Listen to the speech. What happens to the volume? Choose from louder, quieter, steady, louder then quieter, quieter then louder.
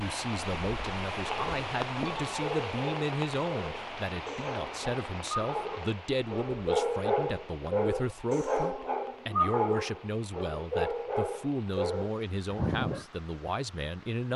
steady.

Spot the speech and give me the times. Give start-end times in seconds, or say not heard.
0.0-14.3.